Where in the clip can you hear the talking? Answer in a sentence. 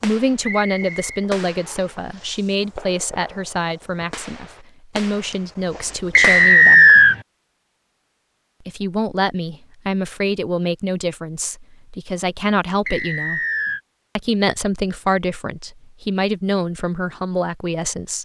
The talking can be heard from 0.0 to 6.9 s, from 8.7 to 13.4 s and from 14.2 to 18.1 s.